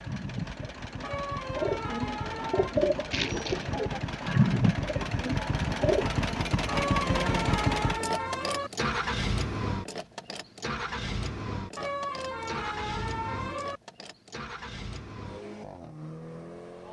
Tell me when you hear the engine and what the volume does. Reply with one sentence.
You can hear the engine from 0.0 to 16.8 s, getting louder then quieter.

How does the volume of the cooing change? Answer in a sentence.
The loudness of the cooing goes up, then down.